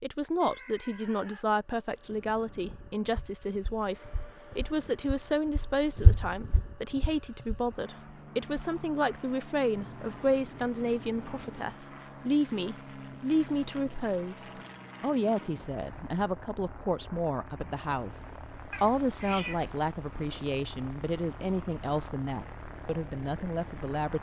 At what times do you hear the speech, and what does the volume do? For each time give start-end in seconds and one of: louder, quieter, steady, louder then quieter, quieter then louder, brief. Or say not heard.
0.0-24.1 steady.